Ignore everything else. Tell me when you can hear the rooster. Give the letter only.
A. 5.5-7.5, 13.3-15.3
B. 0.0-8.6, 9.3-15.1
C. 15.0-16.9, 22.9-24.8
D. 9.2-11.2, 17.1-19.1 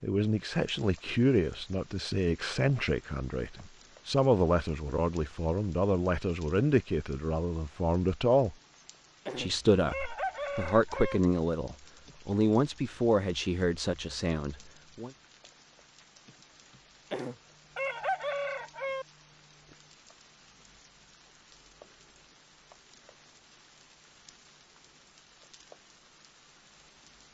D.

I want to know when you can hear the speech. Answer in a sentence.
The speech can be heard from 0.0 to 8.6 s and from 9.3 to 15.1 s.